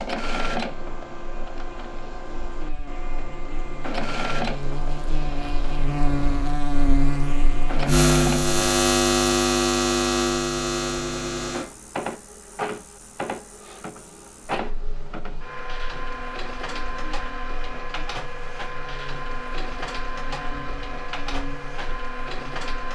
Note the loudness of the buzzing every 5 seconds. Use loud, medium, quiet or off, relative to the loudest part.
quiet, loud, medium, quiet, quiet.